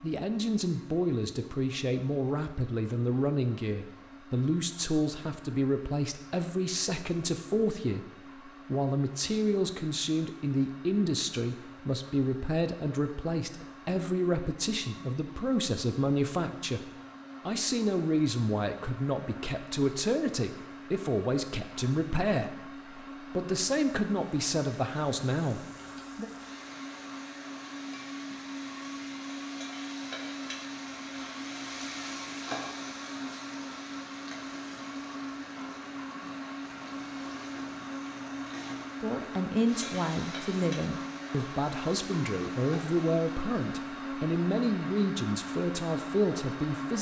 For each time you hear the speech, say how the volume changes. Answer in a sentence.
The speech can be heard from 0.0 to 16.9 s, at a steady volume; from 17.4 to 26.3 s, at a steady volume; and from 39.0 to 46.9 s, at a steady volume.